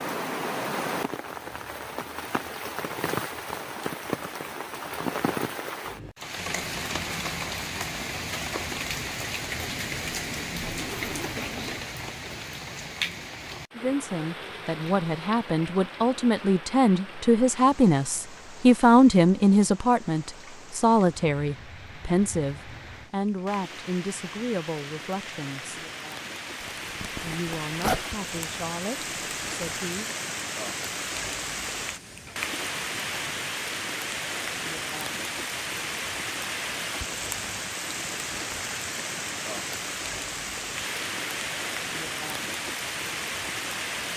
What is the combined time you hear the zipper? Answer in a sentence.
The zipper can be heard for 4 seconds in total.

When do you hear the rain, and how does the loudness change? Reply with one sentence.
You can hear the rain from 0.0 to 44.1 s, getting quieter then louder.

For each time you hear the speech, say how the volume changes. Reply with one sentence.
You can hear the speech from 13.8 to 25.8 s, getting louder then quieter; and briefly from 27.2 to 30.1 s.